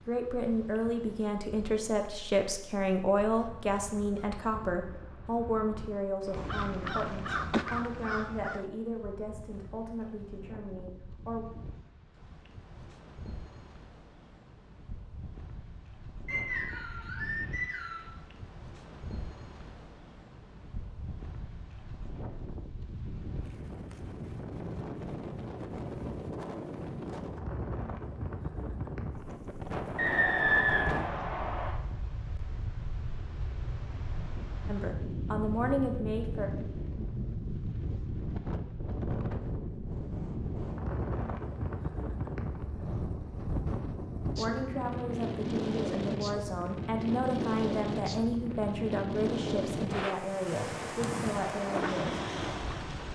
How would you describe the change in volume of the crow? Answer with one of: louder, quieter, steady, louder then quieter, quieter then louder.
louder.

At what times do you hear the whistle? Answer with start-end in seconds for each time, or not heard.
16.2-18.1, 29.9-31.7.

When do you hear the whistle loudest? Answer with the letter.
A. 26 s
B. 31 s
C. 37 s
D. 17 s
B.